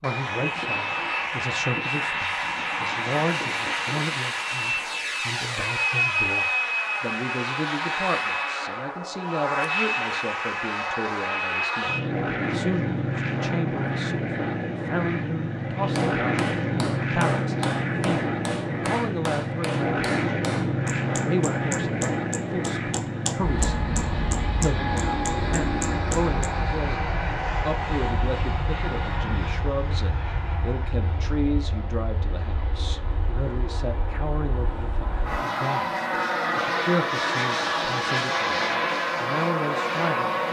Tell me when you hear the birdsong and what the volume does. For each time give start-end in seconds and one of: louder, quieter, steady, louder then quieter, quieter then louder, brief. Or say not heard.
not heard.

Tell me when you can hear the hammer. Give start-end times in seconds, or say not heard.
15.9-26.5.